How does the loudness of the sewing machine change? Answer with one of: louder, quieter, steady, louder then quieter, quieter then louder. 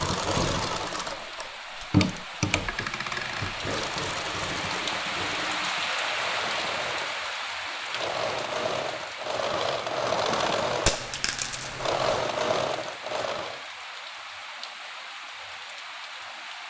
quieter then louder.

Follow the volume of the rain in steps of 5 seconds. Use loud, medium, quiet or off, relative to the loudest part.
loud, loud, medium, medium.